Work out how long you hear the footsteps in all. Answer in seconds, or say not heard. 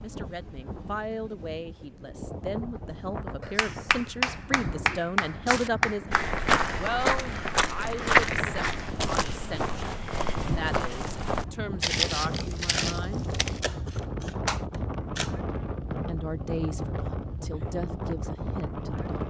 8 s.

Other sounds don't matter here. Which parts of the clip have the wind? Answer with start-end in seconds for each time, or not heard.
0.0-19.2.